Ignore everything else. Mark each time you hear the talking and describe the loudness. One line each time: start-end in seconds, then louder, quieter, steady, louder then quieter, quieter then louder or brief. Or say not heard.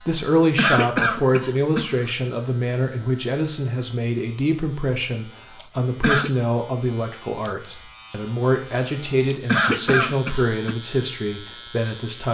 0.0-12.3 steady.